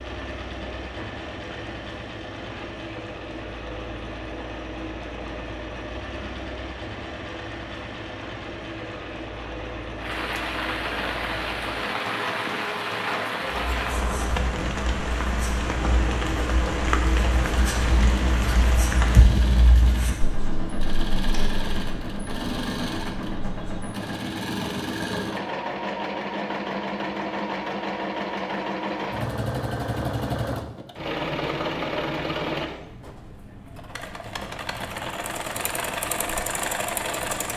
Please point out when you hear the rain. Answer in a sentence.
You can hear the rain from 0.0 to 19.2 s.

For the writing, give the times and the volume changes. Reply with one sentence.
The writing can be heard from 13.4 to 23.9 s, getting louder then quieter.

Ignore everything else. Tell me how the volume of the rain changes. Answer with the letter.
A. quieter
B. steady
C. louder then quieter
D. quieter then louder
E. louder
E.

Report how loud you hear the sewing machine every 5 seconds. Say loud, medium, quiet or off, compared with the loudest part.
medium, medium, medium, loud, loud, loud, loud, loud.